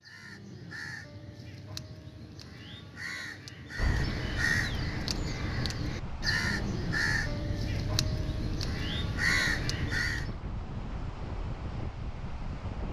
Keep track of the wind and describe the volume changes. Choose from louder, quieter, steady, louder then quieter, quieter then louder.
steady.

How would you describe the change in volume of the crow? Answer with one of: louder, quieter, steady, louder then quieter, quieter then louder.
louder.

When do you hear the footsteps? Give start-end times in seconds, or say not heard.
not heard.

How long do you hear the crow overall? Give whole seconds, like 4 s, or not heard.
10 s.